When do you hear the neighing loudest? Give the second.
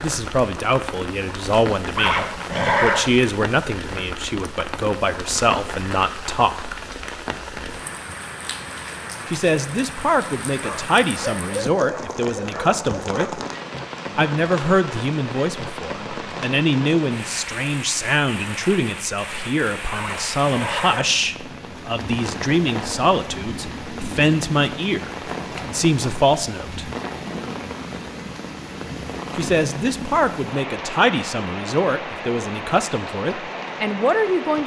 3 s.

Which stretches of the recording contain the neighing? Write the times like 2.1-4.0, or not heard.
1.9-3.1, 19.9-21.2.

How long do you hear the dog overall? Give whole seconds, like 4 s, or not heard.
3 s.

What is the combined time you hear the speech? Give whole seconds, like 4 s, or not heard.
29 s.